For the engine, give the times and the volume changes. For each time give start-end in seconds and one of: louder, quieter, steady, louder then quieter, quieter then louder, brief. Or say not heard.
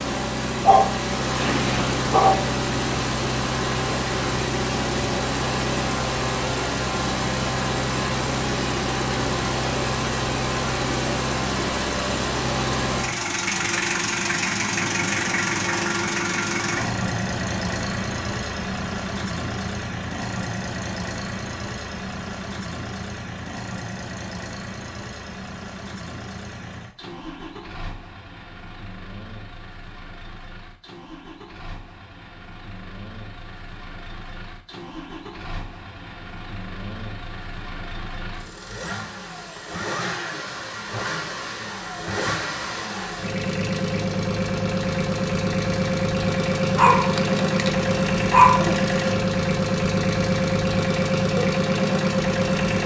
0.0-52.8 quieter then louder.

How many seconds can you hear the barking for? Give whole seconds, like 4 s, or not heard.
4 s.